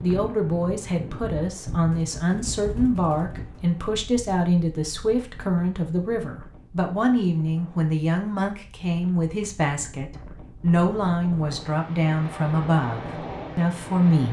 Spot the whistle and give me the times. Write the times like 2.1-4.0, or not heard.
not heard.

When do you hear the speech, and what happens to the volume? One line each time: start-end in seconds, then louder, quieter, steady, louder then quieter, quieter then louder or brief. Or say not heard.
0.0-14.2 steady.